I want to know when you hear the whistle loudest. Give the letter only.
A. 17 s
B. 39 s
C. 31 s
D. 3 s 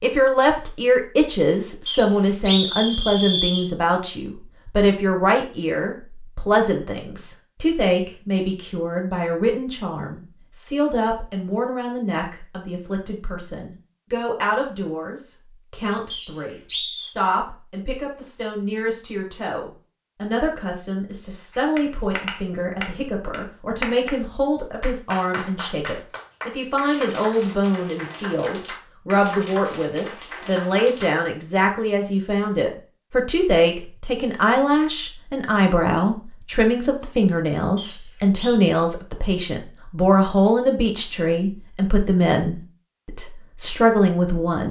D.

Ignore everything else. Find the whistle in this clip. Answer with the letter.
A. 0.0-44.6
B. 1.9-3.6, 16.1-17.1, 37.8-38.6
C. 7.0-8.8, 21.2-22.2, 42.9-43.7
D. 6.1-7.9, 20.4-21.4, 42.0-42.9
B.